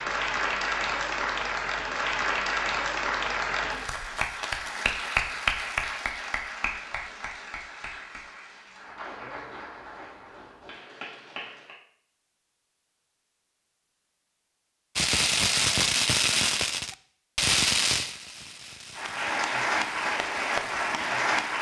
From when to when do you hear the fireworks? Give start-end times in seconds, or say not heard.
14.9-21.5.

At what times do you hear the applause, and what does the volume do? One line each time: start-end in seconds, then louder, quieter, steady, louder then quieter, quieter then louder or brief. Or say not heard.
0.0-11.8 quieter
18.9-21.5 brief.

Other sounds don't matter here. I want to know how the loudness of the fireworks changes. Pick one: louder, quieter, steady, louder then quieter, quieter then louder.
quieter.